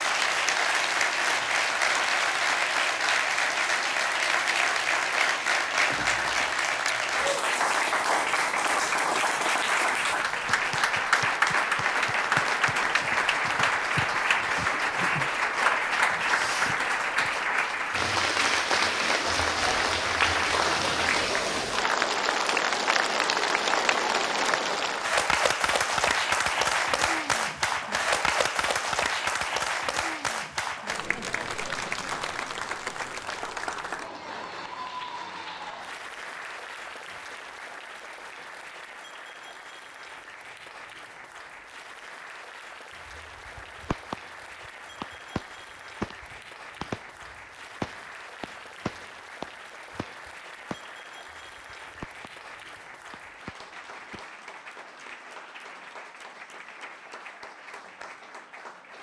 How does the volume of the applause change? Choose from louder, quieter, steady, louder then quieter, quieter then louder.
quieter.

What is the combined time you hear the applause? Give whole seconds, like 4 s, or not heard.
59 s.